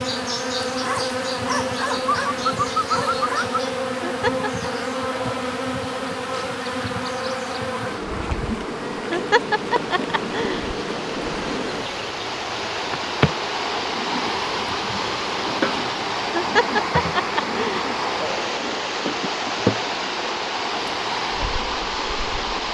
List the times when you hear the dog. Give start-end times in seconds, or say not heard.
0.8-3.6.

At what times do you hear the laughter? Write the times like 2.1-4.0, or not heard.
4.0-4.7, 9.1-10.8, 16.4-17.9.